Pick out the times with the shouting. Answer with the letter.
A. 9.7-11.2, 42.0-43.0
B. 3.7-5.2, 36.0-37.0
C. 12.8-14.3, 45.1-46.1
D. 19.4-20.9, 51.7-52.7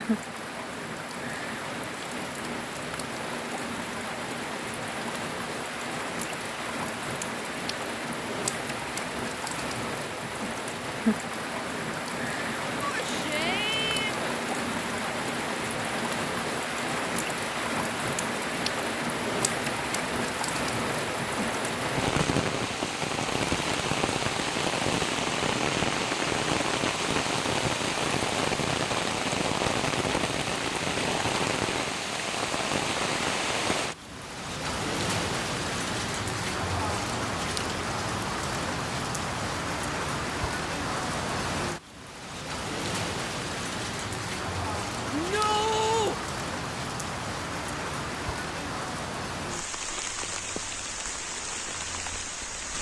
C.